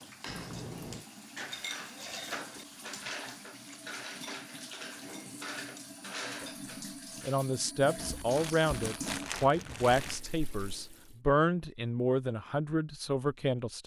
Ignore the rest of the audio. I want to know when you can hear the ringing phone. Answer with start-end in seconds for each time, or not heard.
0.2-1.1.